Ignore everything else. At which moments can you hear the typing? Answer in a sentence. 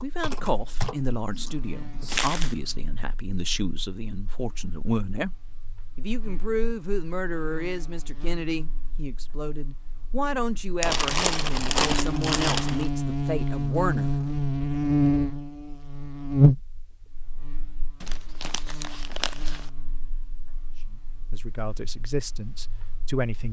You can hear the typing from 0.0 to 2.3 s.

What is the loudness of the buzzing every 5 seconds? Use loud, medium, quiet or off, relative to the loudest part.
quiet, quiet, loud, loud, quiet.